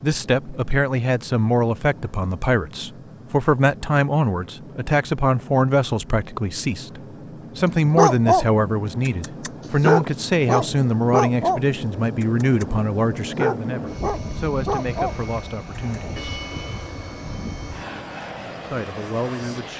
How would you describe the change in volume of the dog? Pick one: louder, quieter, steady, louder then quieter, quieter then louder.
quieter.